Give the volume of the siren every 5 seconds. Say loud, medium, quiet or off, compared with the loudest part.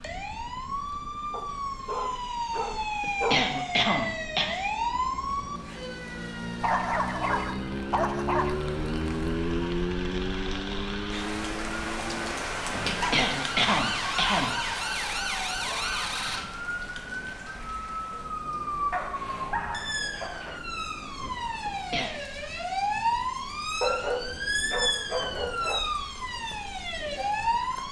loud, medium, loud, loud, loud, loud.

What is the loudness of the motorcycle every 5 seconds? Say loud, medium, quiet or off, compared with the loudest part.
quiet, loud, loud, quiet, quiet, quiet.